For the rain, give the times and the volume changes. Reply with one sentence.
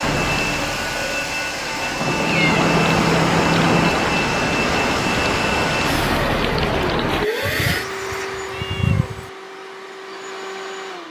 You can hear the rain from 0.0 to 7.3 s, getting louder.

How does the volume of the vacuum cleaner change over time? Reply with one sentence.
The loudness of the vacuum cleaner goes down.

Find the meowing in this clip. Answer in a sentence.
The meowing can be heard from 2.0 to 3.9 s and from 7.4 to 9.3 s.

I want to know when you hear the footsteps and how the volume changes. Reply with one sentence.
You can't hear the footsteps here.